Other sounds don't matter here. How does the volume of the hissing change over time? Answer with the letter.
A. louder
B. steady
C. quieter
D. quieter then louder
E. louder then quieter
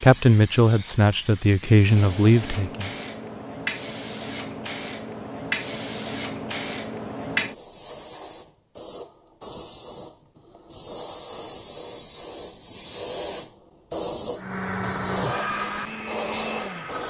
A.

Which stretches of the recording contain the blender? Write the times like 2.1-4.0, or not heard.
14.3-17.0.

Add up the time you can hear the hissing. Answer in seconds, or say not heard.
17 s.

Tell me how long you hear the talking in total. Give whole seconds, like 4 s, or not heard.
3 s.